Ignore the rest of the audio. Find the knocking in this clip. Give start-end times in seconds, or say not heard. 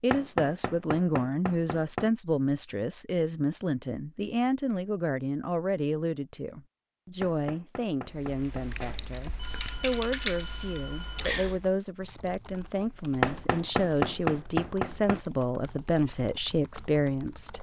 0.1-2.1, 7.2-8.7, 13.2-15.2.